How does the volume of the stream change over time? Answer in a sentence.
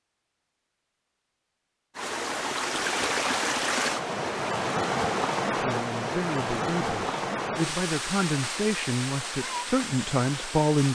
The loudness of the stream goes down.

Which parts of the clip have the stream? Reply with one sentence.
The stream can be heard from 1.9 to 10.9 s.